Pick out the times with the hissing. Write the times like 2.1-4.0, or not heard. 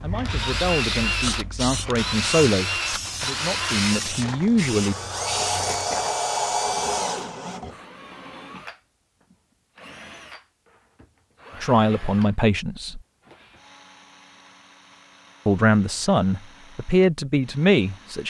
0.0-6.2.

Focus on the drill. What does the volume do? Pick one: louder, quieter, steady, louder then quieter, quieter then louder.
quieter.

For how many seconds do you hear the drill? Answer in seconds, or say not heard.
18 s.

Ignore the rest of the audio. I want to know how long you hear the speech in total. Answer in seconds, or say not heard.
9 s.